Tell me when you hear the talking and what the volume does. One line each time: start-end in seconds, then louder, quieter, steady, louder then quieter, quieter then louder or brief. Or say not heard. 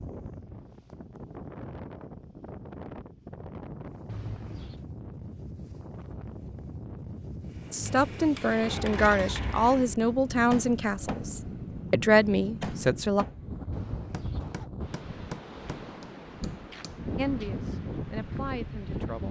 7.7-13.2 quieter then louder
17.1-19.2 brief.